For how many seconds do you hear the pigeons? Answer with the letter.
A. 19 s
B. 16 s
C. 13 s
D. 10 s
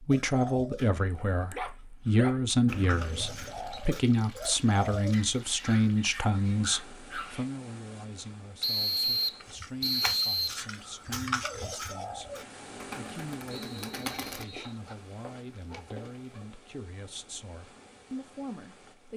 D.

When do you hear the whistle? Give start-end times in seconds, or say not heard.
2.6-3.8, 8.6-10.6, 13.5-14.8.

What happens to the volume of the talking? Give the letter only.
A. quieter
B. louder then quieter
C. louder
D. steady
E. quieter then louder
A.